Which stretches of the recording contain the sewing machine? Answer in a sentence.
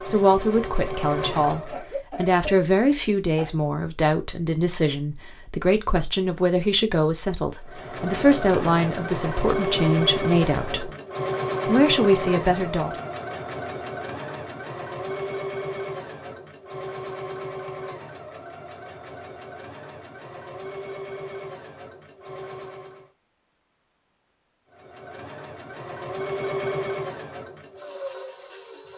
You can hear the sewing machine from 0.0 to 1.9 s, from 7.7 to 23.1 s and from 24.7 to 28.9 s.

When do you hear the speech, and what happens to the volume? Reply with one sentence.
You can hear the speech from 0.1 to 10.9 s, at a steady volume; and briefly from 11.7 to 12.9 s.